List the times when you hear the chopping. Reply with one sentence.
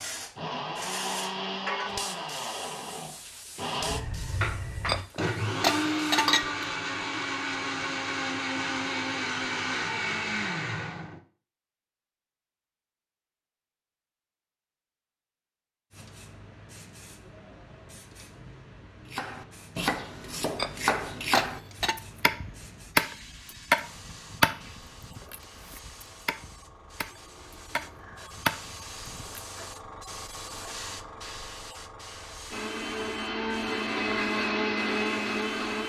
The chopping can be heard from 19.1 to 29.4 s.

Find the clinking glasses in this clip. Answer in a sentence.
You can hear the clinking glasses from 4.8 to 6.5 s and from 20.6 to 21.9 s.